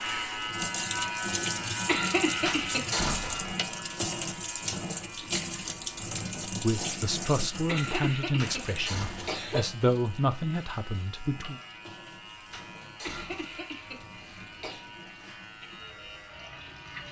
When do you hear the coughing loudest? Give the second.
2 s.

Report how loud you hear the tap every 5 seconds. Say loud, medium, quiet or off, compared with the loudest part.
loud, loud, quiet, quiet.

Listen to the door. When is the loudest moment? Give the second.
3 s.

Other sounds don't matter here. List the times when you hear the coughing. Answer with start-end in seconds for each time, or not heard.
1.9-3.0, 7.7-9.7, 13.1-14.8.